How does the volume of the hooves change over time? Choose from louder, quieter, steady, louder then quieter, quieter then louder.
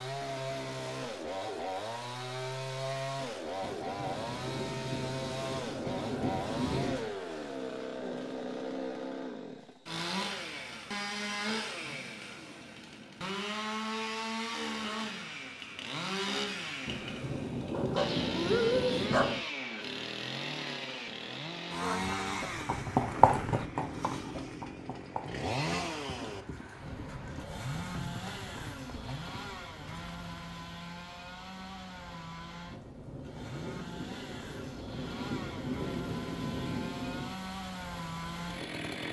quieter.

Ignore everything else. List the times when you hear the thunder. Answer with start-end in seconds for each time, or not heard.
3.6-7.1, 16.9-19.4, 32.7-37.4.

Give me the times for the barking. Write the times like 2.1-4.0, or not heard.
17.7-19.4.